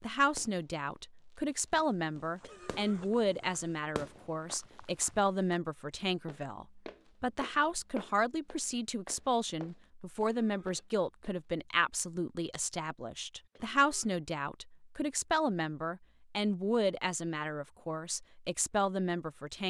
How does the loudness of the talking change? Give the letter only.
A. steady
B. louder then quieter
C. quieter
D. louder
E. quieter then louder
A.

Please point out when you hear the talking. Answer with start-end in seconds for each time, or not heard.
0.0-19.6.